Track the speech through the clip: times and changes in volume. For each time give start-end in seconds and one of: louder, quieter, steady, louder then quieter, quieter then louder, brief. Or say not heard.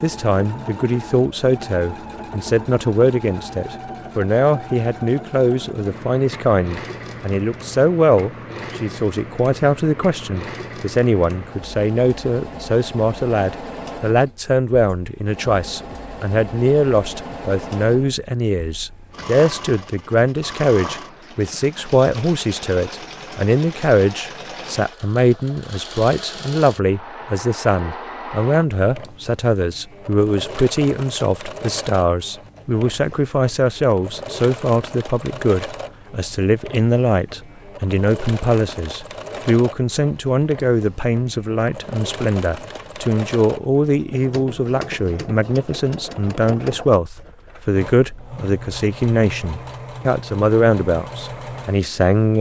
0.0-52.3 steady.